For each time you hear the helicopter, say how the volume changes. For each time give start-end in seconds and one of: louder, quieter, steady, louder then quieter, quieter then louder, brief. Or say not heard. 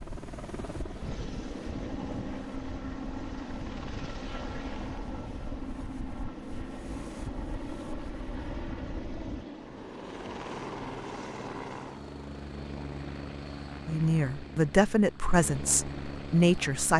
0.0-16.9 steady.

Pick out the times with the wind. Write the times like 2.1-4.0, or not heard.
0.0-9.4.